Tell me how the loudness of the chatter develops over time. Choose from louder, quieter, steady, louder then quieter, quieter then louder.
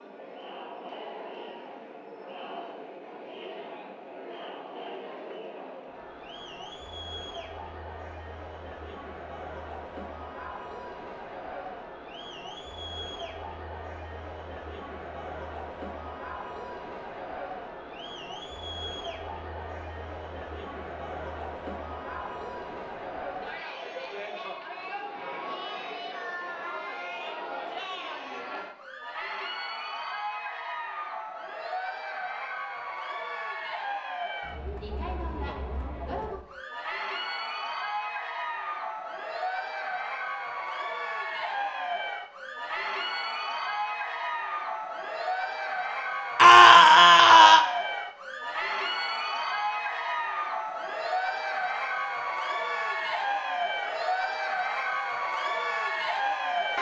louder.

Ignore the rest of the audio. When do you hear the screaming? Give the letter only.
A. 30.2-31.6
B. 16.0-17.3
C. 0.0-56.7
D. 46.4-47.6
D.